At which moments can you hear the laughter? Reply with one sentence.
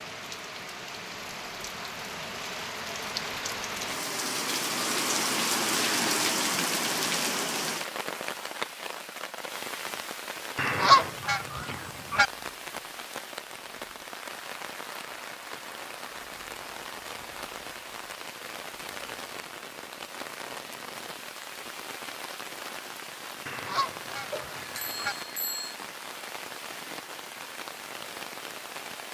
The laughter can't be heard in this clip.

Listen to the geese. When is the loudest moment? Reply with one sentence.
The loudest moment of the geese is at 11 seconds.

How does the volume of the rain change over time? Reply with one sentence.
The loudness of the rain goes down.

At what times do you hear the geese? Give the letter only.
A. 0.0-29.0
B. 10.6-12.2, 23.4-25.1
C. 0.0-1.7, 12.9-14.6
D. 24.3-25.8
B.